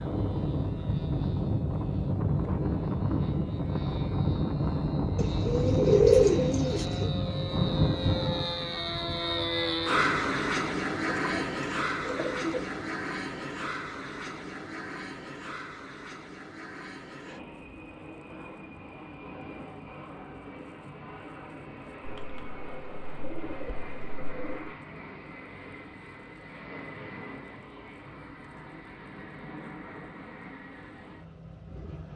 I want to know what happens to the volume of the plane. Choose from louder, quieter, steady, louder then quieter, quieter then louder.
quieter.